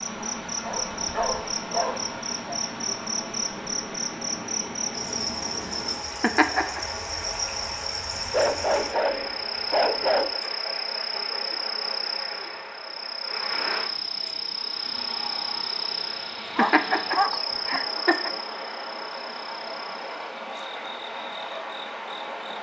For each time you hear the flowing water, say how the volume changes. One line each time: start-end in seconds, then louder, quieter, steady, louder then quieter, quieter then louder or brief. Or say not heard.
0.0-22.5 steady.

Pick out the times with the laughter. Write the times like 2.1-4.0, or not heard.
6.2-6.8, 16.6-18.3.